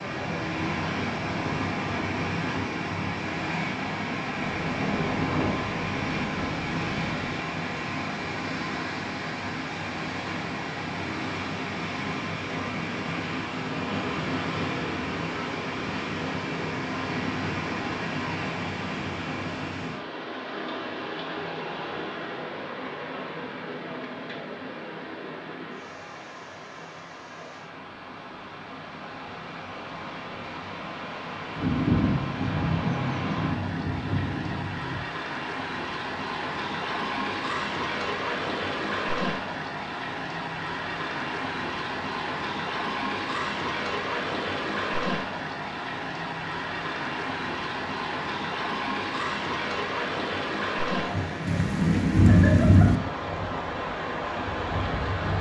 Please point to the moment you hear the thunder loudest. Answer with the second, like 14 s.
52 s.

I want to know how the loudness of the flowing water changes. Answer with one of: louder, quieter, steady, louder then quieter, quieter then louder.
quieter then louder.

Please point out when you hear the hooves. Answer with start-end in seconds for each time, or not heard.
not heard.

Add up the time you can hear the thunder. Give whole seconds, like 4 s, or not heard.
8 s.